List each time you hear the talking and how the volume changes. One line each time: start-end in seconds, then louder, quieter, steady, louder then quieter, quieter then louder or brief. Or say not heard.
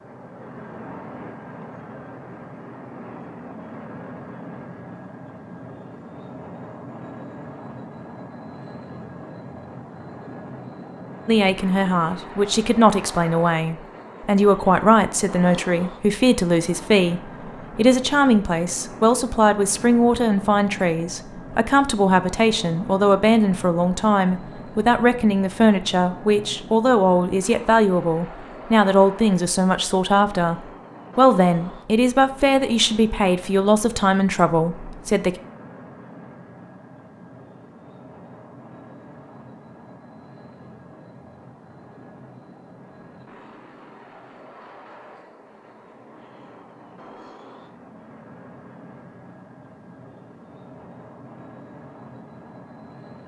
11.2-35.4 steady.